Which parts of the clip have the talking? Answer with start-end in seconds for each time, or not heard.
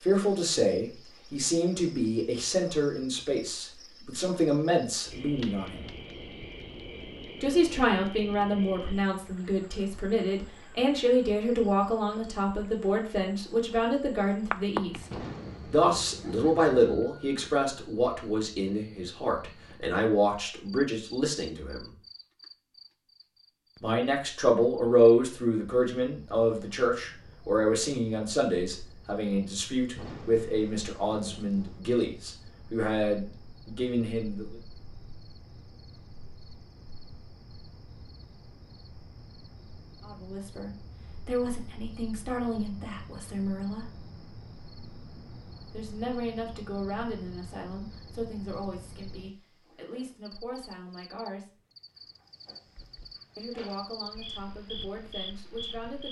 0.0-5.8, 7.4-21.9, 23.8-34.5, 40.0-43.9, 45.7-51.5, 53.4-56.0.